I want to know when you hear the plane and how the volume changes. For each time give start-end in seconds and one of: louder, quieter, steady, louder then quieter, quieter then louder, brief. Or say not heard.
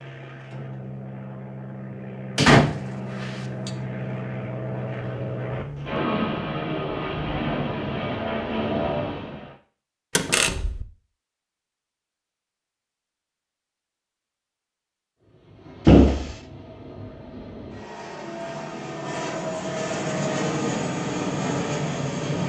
0.0-9.6 louder
15.2-22.4 louder.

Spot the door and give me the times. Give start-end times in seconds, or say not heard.
2.4-3.7, 10.2-10.8, 15.8-16.4.